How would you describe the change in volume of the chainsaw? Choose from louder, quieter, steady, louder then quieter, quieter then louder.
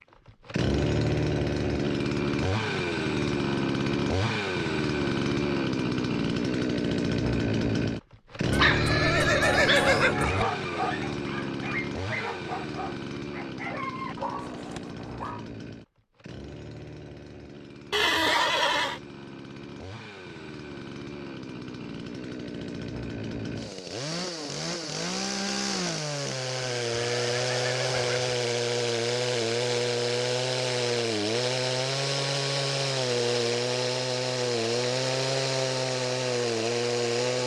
quieter then louder.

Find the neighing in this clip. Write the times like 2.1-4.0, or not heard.
8.5-10.4, 17.9-19.0, 26.6-28.4.